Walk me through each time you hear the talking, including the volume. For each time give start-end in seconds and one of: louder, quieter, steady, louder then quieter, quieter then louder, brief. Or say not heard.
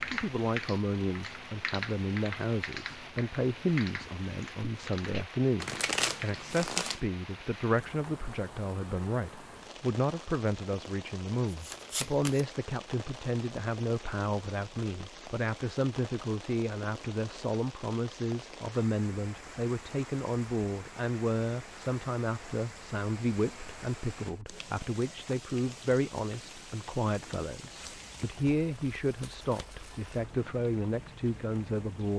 0.1-32.1 steady.